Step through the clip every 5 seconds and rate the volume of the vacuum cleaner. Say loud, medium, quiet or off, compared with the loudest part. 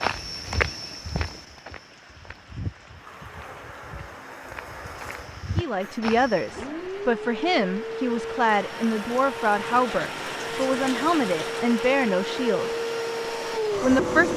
quiet, medium, loud.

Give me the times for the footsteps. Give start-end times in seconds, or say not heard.
0.0-6.7.